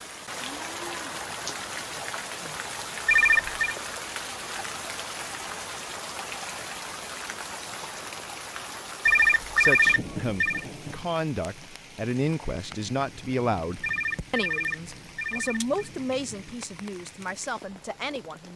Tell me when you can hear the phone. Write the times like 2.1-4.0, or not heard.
3.0-3.8, 9.1-10.7, 13.8-15.8.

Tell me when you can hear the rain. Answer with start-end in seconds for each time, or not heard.
0.0-18.5.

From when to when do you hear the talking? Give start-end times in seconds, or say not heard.
9.6-18.5.